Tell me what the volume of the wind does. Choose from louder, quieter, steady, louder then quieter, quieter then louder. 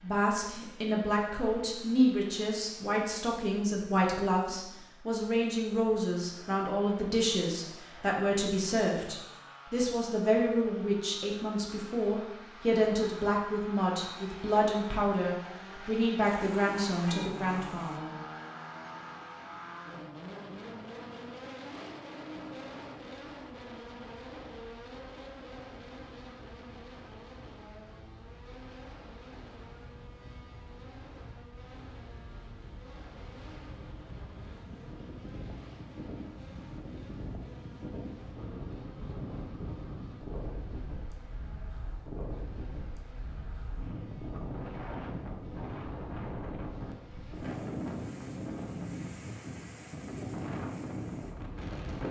louder.